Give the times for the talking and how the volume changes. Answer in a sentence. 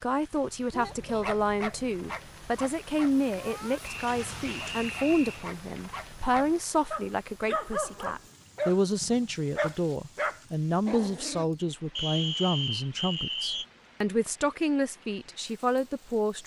The talking can be heard from 0.0 to 16.4 s, at a steady volume.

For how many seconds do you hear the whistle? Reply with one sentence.
The whistle can be heard for 3 seconds in total.